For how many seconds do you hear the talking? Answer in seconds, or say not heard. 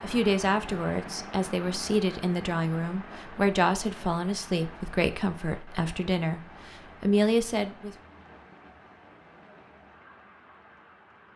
8 s.